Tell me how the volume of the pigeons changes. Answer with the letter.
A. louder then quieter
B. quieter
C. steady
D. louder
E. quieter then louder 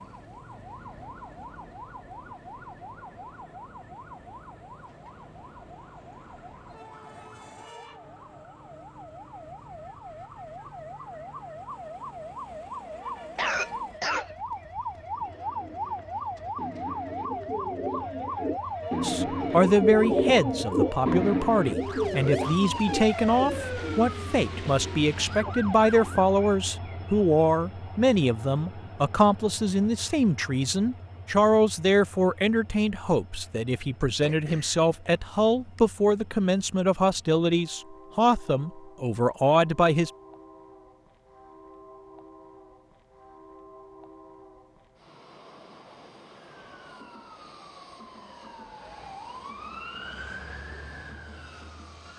A.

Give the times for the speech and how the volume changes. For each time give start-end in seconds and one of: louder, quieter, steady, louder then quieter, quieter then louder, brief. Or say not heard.
19.0-40.1 steady.